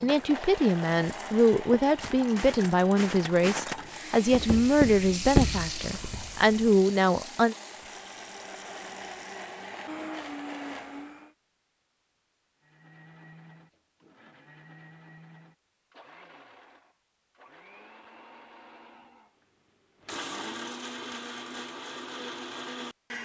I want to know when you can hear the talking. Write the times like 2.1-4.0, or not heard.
0.0-7.5.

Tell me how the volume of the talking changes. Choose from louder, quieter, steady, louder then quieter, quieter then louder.
steady.